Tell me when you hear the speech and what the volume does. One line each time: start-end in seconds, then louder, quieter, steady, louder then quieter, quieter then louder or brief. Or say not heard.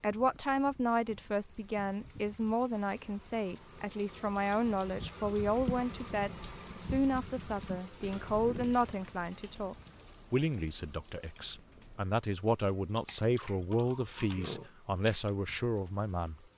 0.0-16.4 steady.